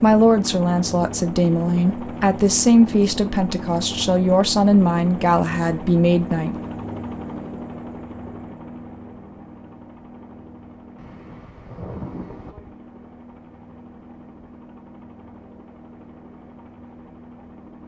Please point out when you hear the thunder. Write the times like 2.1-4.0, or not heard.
10.9-12.6.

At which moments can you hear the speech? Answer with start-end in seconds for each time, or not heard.
0.0-6.5.